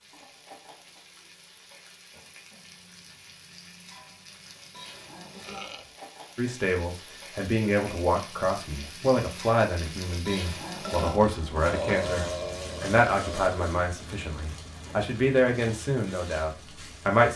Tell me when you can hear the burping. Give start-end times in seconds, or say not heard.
5.4-5.8, 10.8-13.5.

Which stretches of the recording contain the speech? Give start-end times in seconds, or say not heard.
6.3-17.3.